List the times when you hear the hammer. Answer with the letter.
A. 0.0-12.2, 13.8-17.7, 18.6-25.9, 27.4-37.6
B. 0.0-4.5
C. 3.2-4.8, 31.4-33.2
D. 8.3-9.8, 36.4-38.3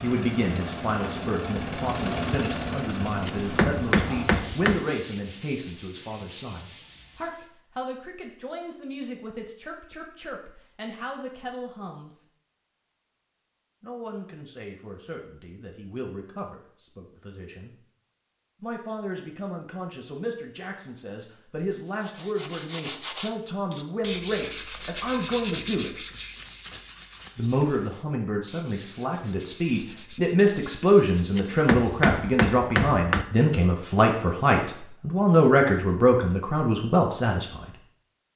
C.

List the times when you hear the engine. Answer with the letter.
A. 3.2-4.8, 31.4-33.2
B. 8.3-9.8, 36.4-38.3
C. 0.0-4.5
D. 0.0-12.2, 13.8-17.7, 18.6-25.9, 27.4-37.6
C.